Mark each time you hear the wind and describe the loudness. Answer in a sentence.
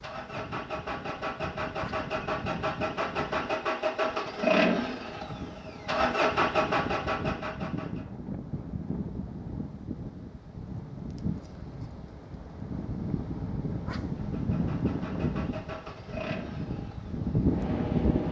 You can hear the wind from 0.0 to 18.2 s, getting louder.